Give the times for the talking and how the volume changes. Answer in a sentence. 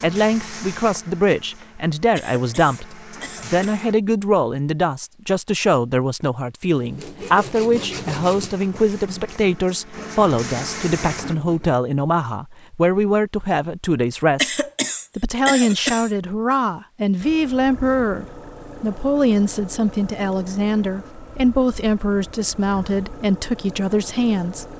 The talking can be heard from 0.0 to 14.6 s, at a steady volume; and from 15.2 to 24.6 s, at a steady volume.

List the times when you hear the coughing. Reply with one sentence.
The coughing can be heard from 2.1 to 3.9 s and from 14.3 to 16.1 s.